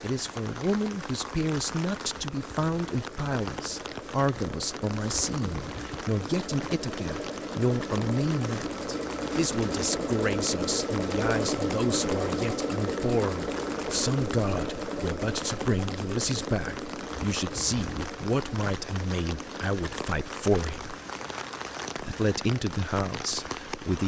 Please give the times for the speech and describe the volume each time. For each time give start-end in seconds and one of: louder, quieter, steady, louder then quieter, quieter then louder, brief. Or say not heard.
0.0-20.9 steady
21.9-24.0 brief.